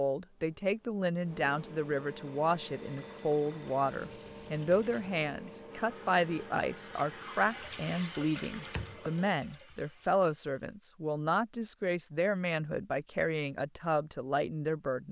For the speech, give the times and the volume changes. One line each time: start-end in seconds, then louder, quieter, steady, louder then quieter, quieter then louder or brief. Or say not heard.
0.0-15.0 steady.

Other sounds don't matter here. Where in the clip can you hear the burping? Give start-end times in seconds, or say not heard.
8.4-9.1.